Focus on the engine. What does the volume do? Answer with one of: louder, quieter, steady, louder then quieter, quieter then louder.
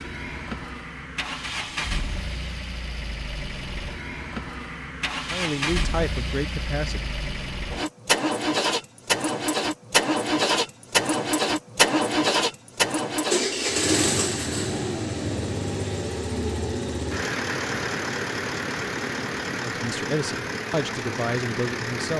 louder then quieter.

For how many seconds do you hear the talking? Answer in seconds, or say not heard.
4 s.